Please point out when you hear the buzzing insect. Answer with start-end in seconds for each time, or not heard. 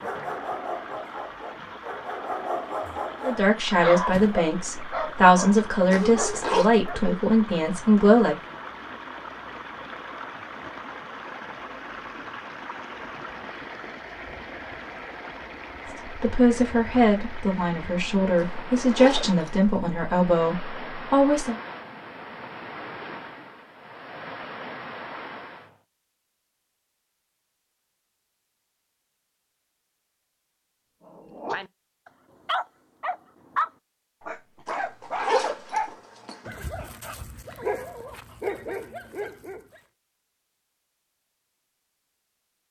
not heard.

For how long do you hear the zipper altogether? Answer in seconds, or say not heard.
4 s.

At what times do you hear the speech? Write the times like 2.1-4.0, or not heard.
3.2-8.3, 16.1-21.6.